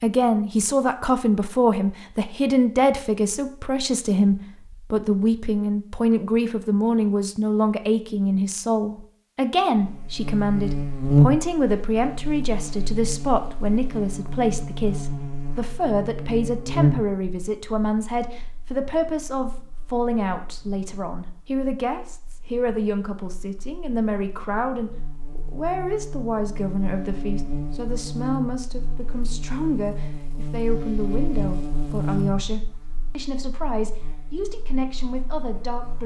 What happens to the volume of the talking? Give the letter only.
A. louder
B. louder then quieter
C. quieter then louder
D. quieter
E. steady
D.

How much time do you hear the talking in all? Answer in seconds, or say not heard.
36 s.